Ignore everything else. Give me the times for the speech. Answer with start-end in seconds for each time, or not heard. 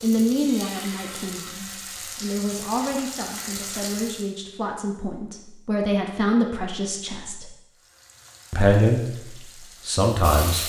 0.0-7.5, 8.5-10.6.